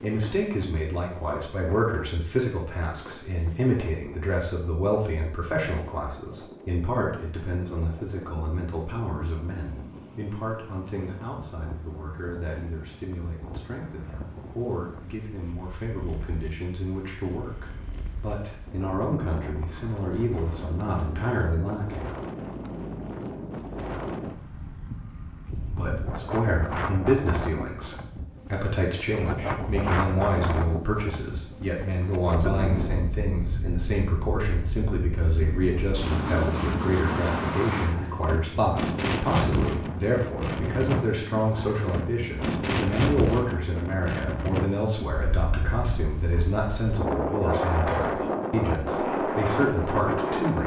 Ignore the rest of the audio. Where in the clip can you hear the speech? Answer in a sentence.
The speech can be heard from 0.0 to 22.1 s and from 25.6 to 50.6 s.